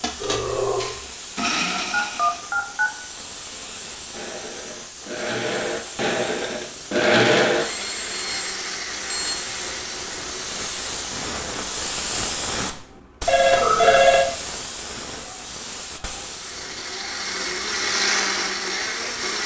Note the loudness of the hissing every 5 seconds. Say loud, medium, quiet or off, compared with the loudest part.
medium, medium, loud, medium.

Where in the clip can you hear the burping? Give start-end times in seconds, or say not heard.
0.1-0.9, 12.9-14.0.